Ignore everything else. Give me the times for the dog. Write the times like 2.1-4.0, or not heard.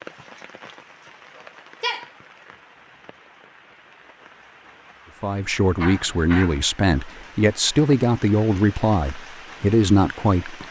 1.4-2.0, 5.8-6.7.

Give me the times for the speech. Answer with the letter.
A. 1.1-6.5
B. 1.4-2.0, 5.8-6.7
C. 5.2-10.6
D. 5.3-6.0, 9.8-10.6
C.